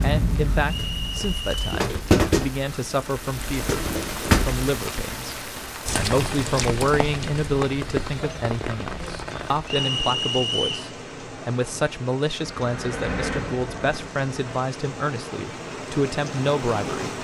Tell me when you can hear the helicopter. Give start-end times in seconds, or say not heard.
12.3-14.7.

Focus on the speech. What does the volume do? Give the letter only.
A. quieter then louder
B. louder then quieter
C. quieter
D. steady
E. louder
D.